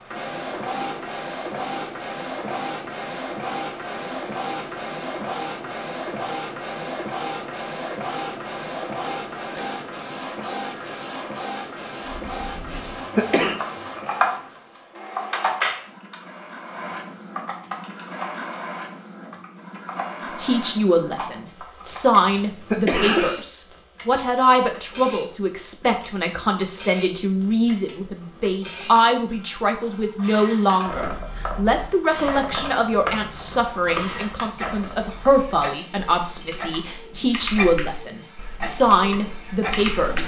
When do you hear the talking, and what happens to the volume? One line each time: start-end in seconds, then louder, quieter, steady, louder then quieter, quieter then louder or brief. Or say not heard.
20.4-40.2 steady.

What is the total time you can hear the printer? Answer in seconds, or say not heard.
40 s.